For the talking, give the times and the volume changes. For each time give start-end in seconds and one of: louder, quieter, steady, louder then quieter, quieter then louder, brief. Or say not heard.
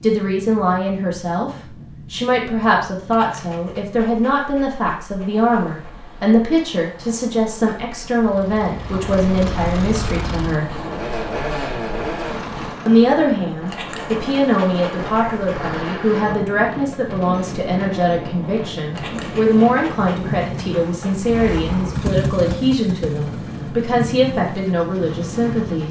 0.0-1.5 brief
2.1-10.7 steady
12.8-25.8 steady.